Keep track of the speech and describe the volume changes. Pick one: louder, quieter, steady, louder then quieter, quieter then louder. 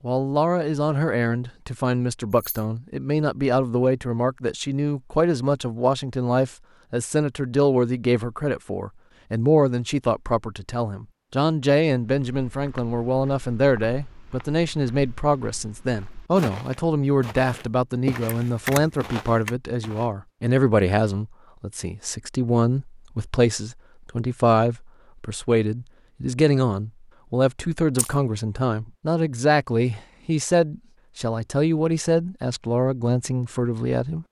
steady.